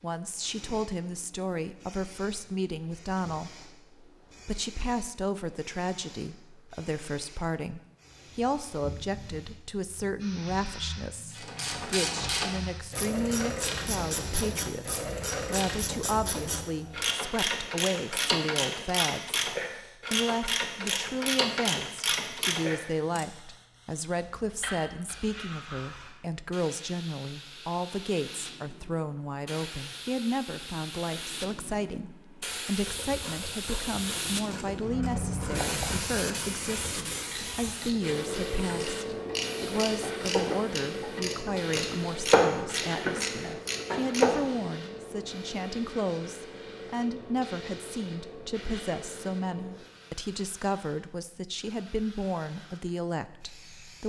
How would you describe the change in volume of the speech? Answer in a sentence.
The loudness of the speech stays about the same.